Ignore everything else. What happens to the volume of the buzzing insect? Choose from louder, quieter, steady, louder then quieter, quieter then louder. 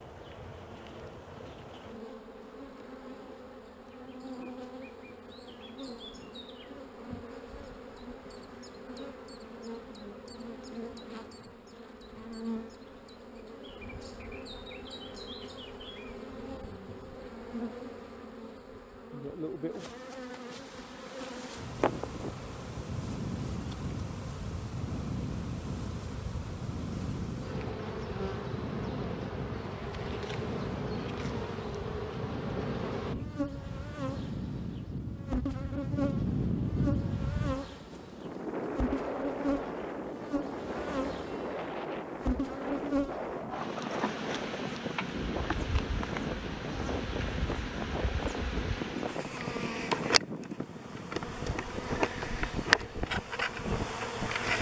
louder.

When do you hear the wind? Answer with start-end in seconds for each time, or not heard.
21.6-54.5.